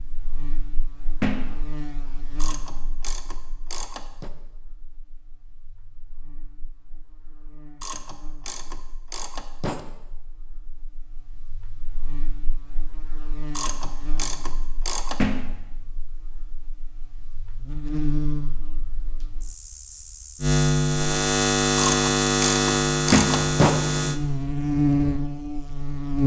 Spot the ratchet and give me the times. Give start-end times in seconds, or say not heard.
2.4-4.3, 7.8-9.8, 13.5-15.2, 21.8-23.8.